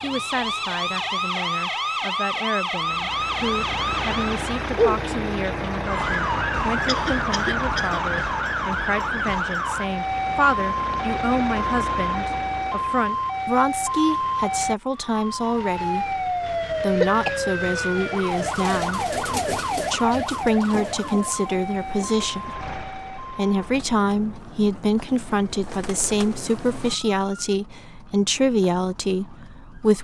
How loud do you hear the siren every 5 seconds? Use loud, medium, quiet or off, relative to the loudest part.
loud, loud, loud, loud, medium, quiet.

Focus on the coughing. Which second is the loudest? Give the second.
17 s.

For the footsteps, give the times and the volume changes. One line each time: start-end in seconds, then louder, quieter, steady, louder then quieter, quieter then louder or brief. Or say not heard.
not heard.